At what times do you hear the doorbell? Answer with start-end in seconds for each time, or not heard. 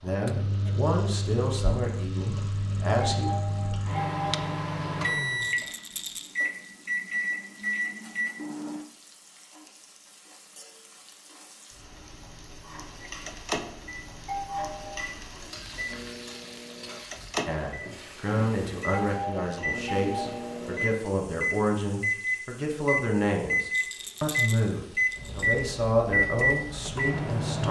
3.0-4.6, 14.2-15.1, 19.1-20.6.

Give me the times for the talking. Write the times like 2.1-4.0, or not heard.
0.0-3.3, 17.4-27.6.